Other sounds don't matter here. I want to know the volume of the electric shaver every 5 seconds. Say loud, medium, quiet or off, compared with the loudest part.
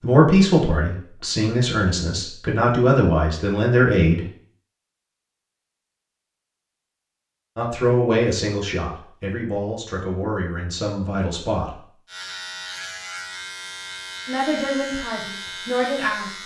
off, off, loud, loud.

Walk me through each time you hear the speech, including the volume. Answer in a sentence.
The speech can be heard from 0.0 to 4.2 s, getting quieter then louder; from 7.5 to 11.8 s, getting quieter; and briefly from 14.2 to 16.3 s.